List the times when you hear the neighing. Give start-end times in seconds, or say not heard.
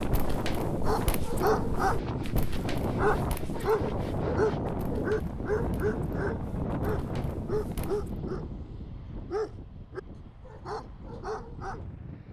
not heard.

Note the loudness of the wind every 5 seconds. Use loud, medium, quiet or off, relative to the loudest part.
loud, loud, quiet.